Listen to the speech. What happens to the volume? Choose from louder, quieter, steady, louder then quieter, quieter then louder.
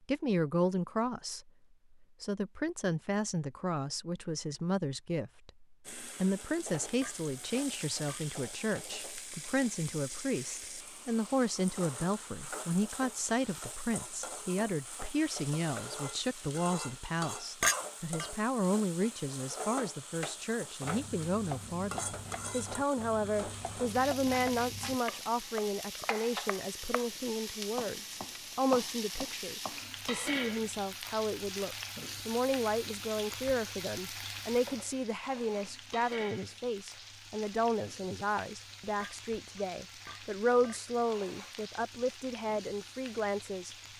steady.